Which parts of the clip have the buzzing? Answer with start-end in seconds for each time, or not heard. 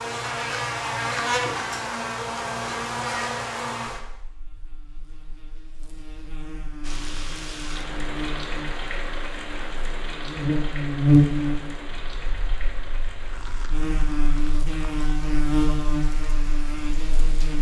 0.0-17.5.